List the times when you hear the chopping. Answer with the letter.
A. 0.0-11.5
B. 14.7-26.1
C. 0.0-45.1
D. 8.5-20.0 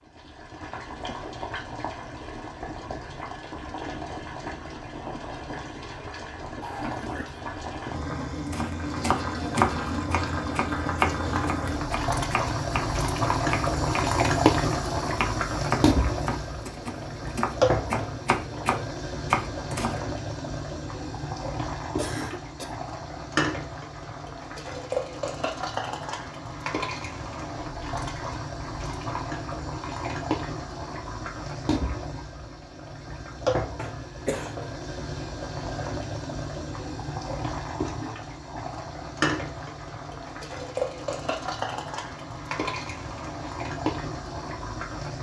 D.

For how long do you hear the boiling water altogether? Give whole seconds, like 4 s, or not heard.
45 s.